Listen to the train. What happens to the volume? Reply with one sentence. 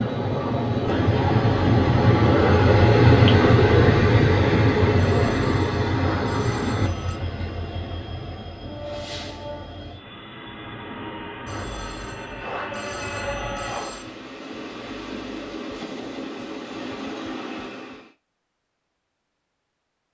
The loudness of the train goes down.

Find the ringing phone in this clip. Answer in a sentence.
You can hear the ringing phone from 5.0 to 7.2 s and from 11.4 to 14.1 s.